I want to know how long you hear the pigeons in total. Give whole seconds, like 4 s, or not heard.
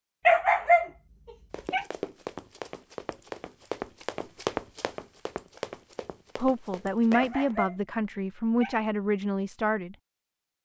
not heard.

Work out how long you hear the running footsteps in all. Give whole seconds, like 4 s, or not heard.
6 s.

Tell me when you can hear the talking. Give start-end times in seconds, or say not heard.
6.3-9.9.